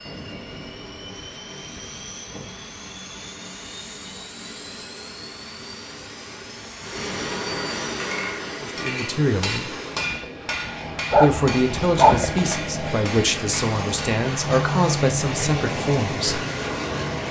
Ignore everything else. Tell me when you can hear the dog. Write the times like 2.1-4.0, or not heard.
11.1-12.5.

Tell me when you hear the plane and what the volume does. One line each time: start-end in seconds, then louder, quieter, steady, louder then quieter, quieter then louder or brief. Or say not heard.
0.0-17.2 louder.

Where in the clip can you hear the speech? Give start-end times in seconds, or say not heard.
8.6-9.7, 11.2-16.4.